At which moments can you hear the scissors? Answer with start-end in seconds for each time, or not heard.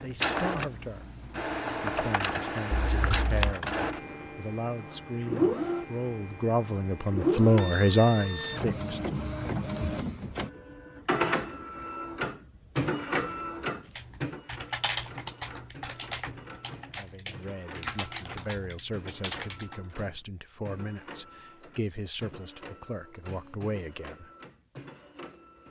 2.7-3.5.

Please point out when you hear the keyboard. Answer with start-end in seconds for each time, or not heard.
13.9-19.9.